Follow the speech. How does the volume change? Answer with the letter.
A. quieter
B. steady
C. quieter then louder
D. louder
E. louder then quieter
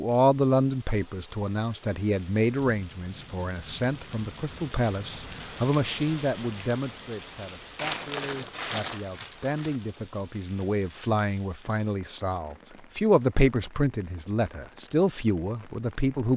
C.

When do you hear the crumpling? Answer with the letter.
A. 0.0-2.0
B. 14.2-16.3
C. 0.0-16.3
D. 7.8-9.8
D.